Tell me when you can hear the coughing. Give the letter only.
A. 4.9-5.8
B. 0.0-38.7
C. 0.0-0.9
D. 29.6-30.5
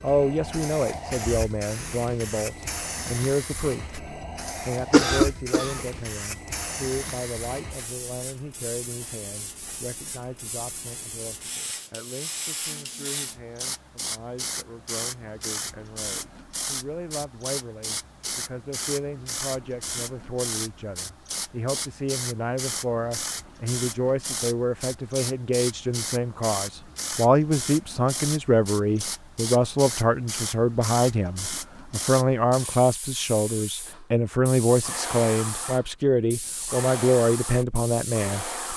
A.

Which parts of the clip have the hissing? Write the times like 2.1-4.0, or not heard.
0.0-38.7.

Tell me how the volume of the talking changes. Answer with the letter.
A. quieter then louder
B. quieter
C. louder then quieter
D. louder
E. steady
A.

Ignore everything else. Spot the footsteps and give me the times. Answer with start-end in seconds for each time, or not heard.
not heard.